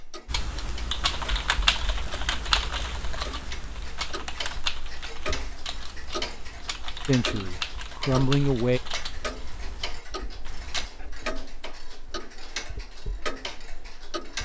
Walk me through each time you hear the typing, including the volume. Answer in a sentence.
The typing can be heard from 0.2 to 10.9 s, getting quieter.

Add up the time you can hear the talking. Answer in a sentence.
You can hear the talking for 2 seconds altogether.